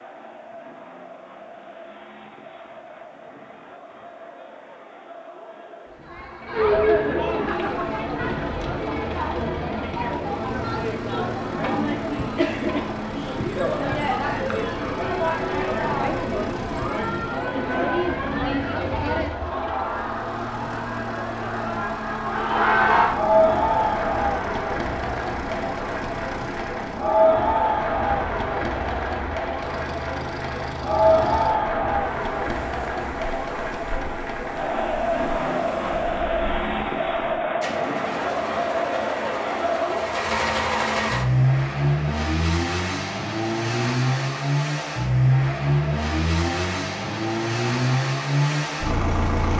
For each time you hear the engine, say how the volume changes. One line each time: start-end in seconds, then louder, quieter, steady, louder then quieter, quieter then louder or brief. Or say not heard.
7.5-49.5 louder.